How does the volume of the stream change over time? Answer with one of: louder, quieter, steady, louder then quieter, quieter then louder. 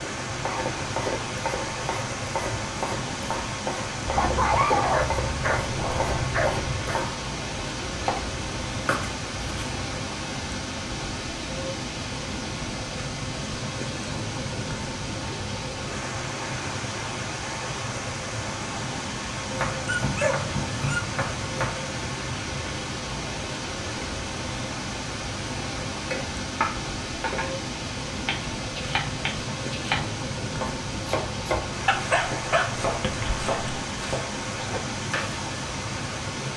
steady.